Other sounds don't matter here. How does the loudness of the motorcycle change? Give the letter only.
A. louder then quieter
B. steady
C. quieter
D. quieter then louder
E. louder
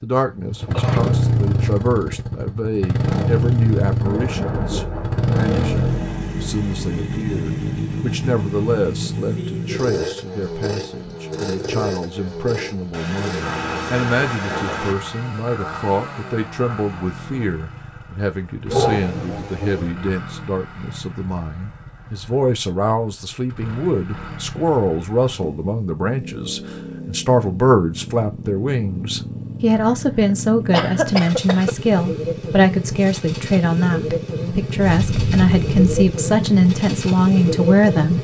D.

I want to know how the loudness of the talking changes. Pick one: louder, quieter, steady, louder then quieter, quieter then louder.
louder.